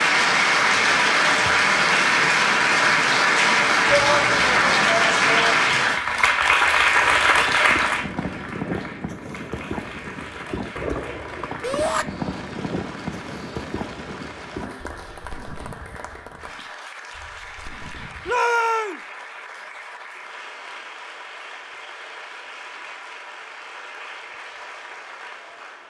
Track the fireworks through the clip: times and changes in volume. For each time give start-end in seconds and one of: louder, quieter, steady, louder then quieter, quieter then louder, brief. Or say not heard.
7.0-18.4 quieter.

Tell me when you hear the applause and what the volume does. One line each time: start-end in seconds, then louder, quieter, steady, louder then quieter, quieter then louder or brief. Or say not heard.
0.0-25.8 quieter.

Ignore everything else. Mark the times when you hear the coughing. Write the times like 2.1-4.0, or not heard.
not heard.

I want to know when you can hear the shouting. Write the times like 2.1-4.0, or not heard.
3.9-5.7, 11.6-12.1, 18.2-19.0.